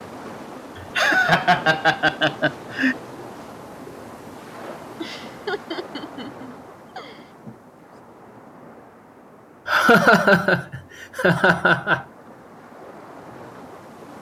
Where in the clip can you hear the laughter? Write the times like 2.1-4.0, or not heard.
0.8-3.0, 5.0-7.2, 9.7-12.1.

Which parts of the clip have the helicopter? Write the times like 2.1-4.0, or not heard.
not heard.